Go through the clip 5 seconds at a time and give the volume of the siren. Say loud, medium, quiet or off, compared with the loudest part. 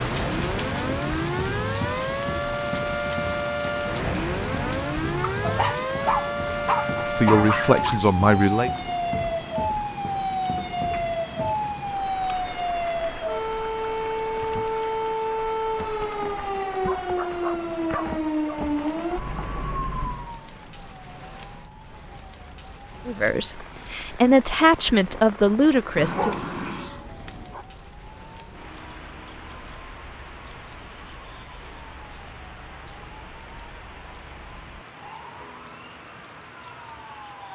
loud, loud, loud, loud, quiet, quiet, quiet, quiet.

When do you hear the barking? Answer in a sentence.
The barking can be heard from 5.4 to 8.0 s, from 16.9 to 18.6 s and from 25.9 to 27.6 s.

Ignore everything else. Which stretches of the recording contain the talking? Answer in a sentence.
The talking can be heard from 7.2 to 8.7 s and from 23.1 to 26.4 s.